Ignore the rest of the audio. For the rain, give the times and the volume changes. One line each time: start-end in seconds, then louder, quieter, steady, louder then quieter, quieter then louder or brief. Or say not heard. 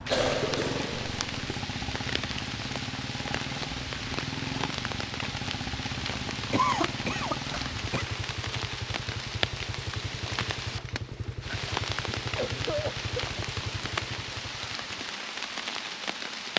0.0-16.5 steady.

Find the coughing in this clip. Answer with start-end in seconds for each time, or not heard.
0.1-1.5, 6.5-8.1, 12.2-13.4.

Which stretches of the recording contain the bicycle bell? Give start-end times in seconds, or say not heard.
not heard.